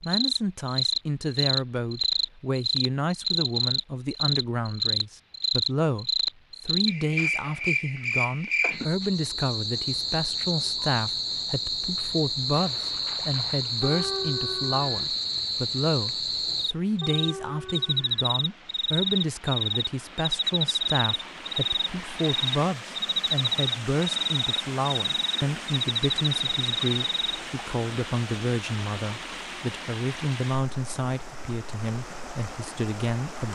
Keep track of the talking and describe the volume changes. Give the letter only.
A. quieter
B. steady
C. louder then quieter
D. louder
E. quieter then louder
B.